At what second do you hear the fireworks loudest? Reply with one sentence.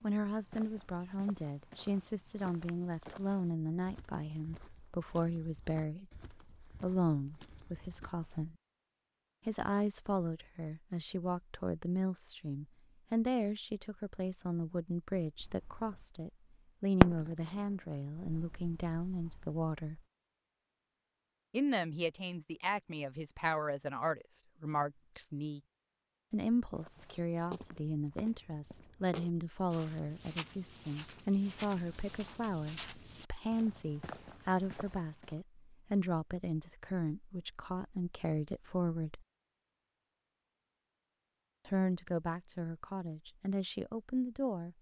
The volume of the fireworks peaks at 17 seconds.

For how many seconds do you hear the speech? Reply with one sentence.
The speech can be heard for 39 seconds in total.